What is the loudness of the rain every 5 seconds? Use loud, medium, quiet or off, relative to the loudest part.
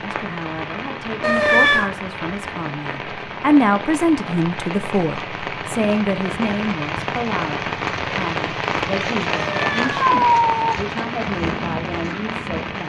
medium, loud, loud.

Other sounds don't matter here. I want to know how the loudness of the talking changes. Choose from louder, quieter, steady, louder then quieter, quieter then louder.
louder then quieter.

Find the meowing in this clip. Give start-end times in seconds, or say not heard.
1.2-1.9, 9.3-10.8.